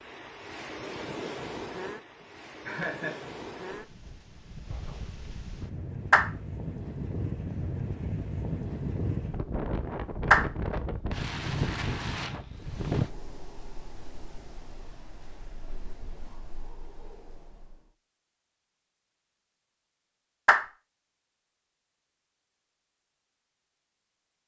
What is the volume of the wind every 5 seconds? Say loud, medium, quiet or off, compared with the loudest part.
medium, loud, loud, quiet, off.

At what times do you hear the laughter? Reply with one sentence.
The laughter can be heard from 2.1 to 3.2 s.